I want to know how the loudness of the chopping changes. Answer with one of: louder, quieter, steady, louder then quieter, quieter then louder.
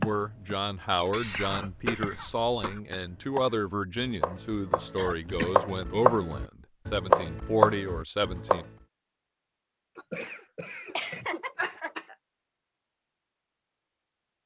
louder.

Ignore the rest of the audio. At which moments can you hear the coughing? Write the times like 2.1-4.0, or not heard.
1.1-2.8, 5.0-5.6, 9.9-12.2.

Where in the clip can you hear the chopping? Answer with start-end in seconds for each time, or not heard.
0.0-8.6.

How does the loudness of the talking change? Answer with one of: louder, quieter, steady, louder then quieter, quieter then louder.
steady.